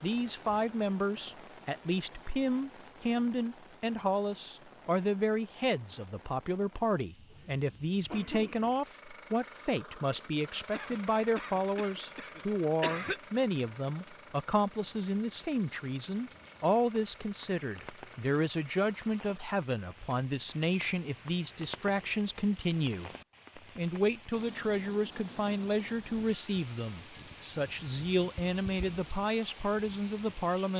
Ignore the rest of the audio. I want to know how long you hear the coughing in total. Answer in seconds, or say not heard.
4 s.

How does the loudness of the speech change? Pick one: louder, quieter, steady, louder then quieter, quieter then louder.
steady.